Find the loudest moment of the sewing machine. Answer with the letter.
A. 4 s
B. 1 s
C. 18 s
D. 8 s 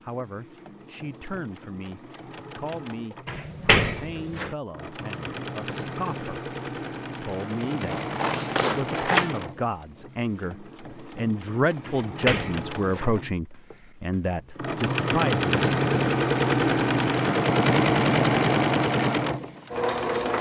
C.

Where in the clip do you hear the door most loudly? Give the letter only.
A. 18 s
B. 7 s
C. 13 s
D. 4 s
D.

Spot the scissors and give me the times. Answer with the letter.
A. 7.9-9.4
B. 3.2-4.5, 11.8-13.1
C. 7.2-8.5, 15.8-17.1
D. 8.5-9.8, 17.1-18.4
A.